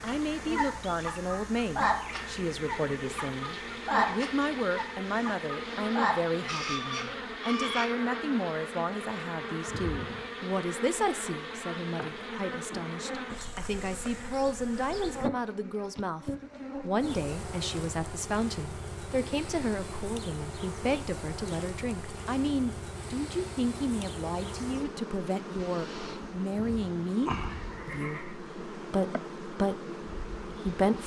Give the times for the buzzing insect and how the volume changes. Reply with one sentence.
The buzzing insect can be heard from 0.0 to 31.0 s, at a steady volume.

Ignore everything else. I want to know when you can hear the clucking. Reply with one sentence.
You can hear the clucking from 0.1 to 7.8 s.